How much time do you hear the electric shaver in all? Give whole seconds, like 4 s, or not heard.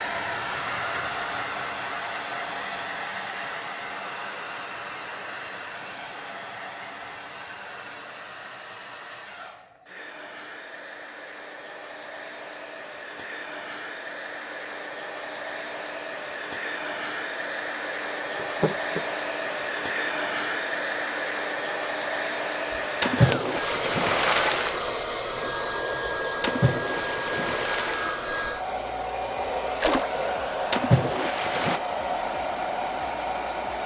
not heard.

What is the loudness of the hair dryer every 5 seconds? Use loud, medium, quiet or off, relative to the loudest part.
loud, medium, medium, loud, loud, loud, loud.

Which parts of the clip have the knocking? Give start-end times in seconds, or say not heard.
18.4-19.1.